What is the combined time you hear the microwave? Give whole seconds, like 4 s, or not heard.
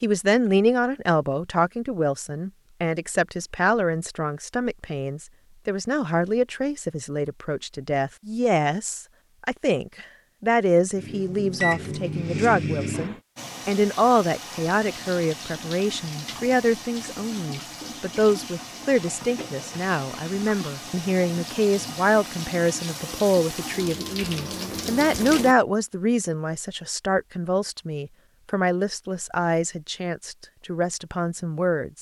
2 s.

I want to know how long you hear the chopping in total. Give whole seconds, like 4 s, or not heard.
not heard.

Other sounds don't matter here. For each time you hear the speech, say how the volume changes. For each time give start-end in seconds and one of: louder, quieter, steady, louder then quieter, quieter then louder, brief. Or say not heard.
0.0-31.9 steady.